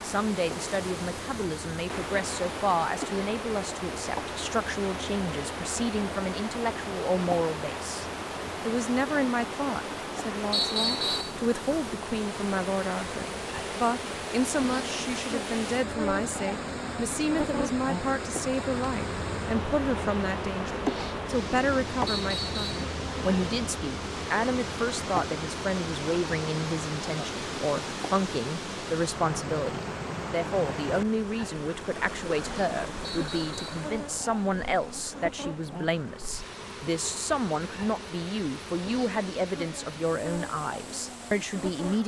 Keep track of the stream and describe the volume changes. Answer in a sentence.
The loudness of the stream goes down.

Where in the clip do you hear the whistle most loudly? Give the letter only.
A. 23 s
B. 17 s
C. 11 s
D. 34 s
C.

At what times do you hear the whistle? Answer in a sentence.
The whistle can be heard from 10.5 to 11.3 s, from 22.1 to 22.9 s and from 33.0 to 33.9 s.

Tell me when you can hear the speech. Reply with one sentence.
The speech can be heard from 0.0 to 8.1 s and from 8.7 to 42.0 s.